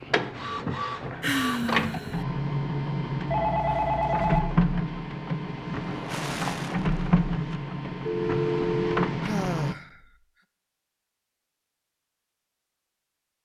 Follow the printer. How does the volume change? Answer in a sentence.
The loudness of the printer stays about the same.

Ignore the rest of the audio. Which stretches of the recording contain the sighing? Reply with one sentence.
The sighing can be heard from 1.2 to 2.2 s, from 5.8 to 7.2 s and from 9.2 to 10.0 s.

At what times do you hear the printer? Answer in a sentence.
You can hear the printer from 0.0 to 9.8 s.